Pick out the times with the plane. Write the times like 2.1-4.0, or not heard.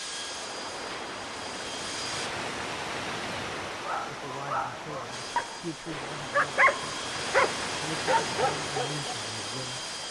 0.0-2.3, 5.1-10.0.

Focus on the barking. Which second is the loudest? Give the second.
7 s.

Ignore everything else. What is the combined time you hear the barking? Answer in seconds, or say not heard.
5 s.